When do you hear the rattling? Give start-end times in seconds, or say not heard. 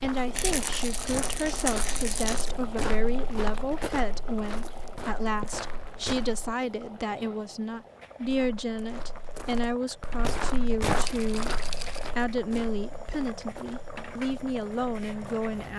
0.3-2.5, 11.1-12.1.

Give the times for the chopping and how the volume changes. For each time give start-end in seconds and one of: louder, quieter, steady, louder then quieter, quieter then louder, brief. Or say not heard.
not heard.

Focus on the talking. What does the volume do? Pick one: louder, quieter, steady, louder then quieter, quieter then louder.
steady.